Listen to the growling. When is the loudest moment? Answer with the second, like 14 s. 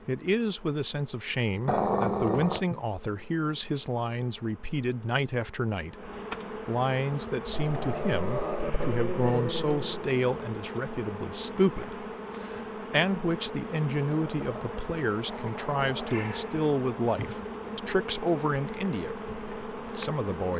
2 s.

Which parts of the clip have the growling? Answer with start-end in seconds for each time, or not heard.
1.6-2.6, 7.5-10.1, 14.2-16.1.